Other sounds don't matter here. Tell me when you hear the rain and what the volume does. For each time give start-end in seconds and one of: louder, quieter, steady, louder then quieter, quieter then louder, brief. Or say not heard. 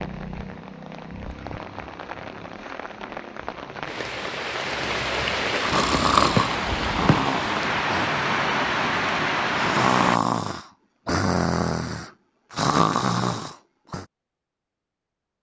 0.0-10.2 louder.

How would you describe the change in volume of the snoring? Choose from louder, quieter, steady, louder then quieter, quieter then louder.
quieter then louder.